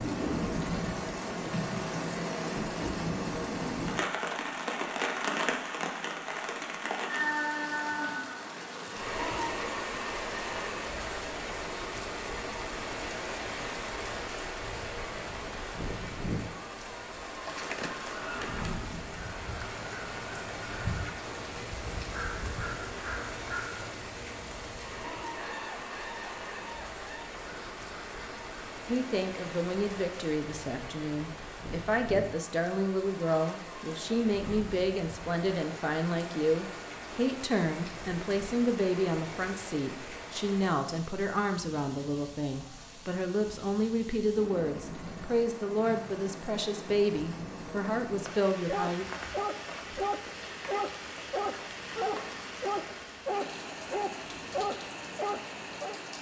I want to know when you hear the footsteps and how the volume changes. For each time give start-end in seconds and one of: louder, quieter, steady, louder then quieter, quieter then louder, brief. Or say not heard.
not heard.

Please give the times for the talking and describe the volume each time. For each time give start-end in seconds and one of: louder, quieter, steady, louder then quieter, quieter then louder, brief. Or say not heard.
28.9-49.0 steady.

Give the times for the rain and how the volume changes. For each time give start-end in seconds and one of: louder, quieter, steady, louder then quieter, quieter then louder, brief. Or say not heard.
0.0-56.1 quieter.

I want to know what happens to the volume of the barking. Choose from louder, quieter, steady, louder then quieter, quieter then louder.
steady.